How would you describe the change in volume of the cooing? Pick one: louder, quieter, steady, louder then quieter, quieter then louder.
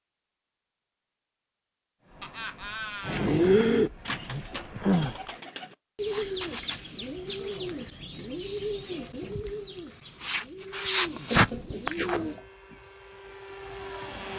quieter then louder.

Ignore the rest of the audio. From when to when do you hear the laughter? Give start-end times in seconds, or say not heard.
2.2-3.3, 11.3-12.4.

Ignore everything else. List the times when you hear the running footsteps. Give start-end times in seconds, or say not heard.
not heard.